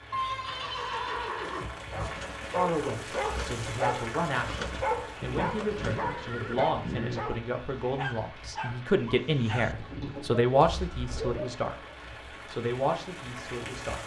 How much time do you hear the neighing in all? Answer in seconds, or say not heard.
6 s.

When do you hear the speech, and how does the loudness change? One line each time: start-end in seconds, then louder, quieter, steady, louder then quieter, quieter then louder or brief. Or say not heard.
2.5-11.8 louder
12.5-14.0 brief.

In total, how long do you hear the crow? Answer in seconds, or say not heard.
not heard.